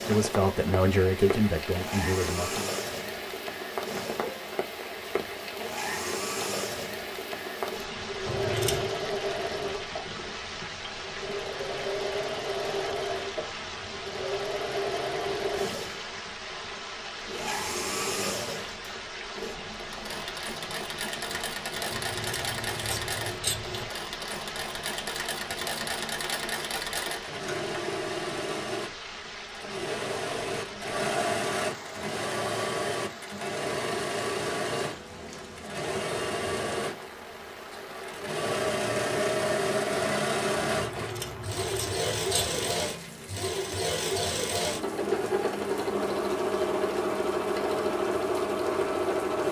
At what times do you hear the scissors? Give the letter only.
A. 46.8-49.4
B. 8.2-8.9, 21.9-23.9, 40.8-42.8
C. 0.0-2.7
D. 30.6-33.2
B.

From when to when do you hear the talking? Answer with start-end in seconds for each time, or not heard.
0.0-2.7.